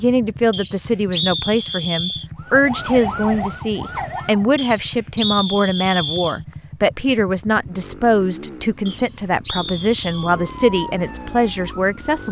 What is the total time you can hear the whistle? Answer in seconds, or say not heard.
5 s.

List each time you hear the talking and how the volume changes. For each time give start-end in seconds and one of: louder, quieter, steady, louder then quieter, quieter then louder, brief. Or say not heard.
0.0-12.2 steady.